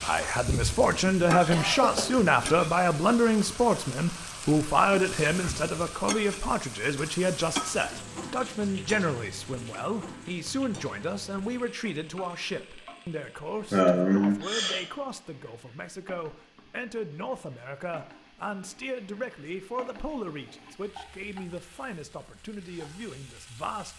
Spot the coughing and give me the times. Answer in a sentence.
You can hear the coughing from 1.5 to 2.1 s and from 13.7 to 14.8 s.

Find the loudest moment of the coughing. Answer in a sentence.
The loudest moment of the coughing is at 14 seconds.